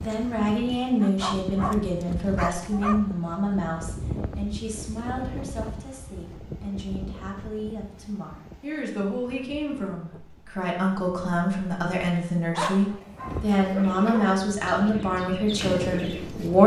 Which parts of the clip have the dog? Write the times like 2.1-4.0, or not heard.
1.0-3.0, 12.5-14.4.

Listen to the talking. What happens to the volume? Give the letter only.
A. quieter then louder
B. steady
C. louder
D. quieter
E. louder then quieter
A.